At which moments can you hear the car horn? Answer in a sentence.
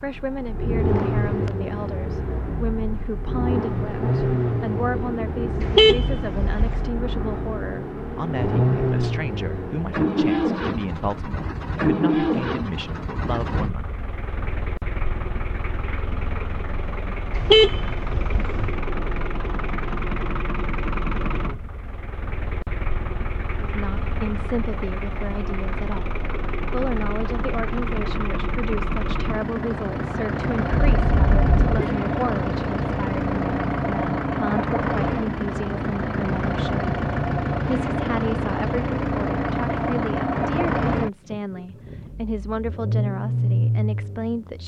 You can hear the car horn from 5.6 to 6.8 s, from 17.4 to 18.7 s and from 30.7 to 31.9 s.